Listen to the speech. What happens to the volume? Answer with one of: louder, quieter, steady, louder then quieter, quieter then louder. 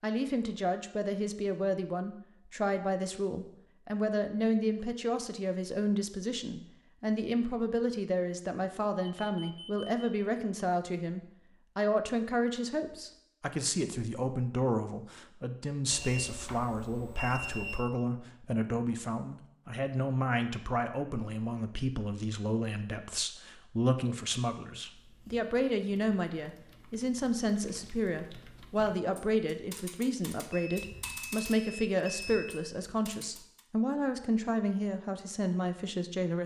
steady.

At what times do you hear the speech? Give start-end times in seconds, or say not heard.
0.0-36.4.